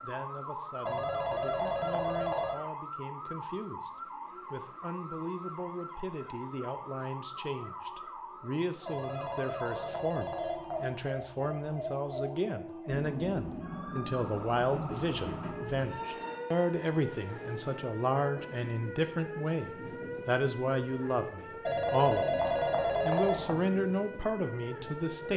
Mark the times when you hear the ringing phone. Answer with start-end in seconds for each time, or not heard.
0.8-2.6, 8.8-10.8, 21.6-23.6.